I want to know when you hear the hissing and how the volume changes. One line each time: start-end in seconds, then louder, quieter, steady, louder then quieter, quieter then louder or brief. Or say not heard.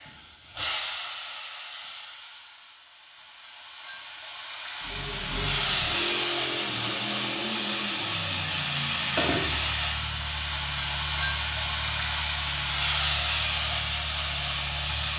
0.0-15.1 louder.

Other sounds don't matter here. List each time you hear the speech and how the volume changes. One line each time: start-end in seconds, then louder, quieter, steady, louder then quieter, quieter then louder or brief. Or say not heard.
not heard.